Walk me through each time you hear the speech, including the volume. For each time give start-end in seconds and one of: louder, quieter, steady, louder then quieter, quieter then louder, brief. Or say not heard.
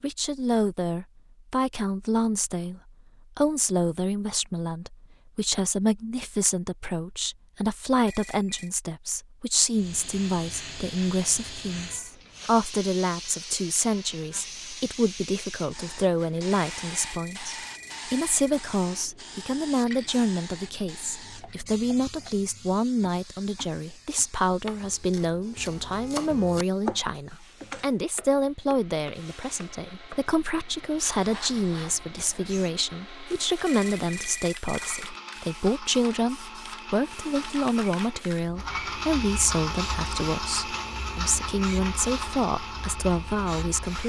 0.0-44.0 steady.